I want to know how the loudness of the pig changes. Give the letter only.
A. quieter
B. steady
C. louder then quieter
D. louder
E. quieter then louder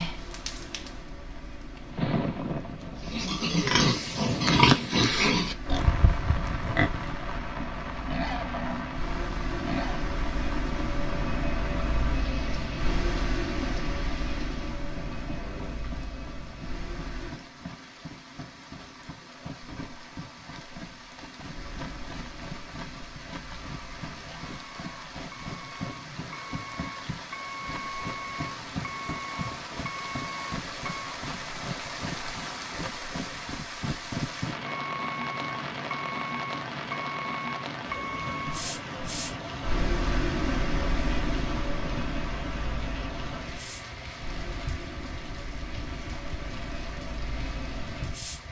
A.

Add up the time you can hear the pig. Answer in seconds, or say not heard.
7 s.